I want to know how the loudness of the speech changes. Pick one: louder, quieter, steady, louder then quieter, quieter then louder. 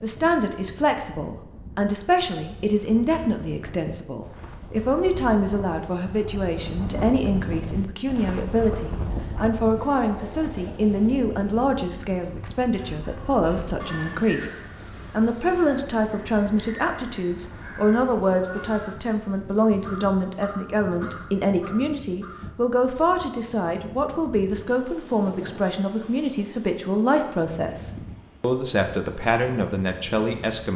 steady.